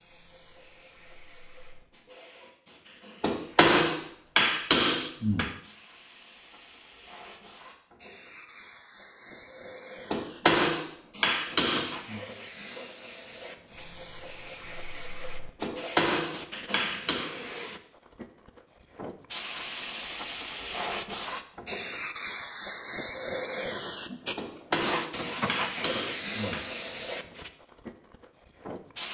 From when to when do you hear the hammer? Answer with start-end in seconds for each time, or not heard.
3.2-5.5, 10.1-12.2, 15.6-17.3, 24.4-26.9.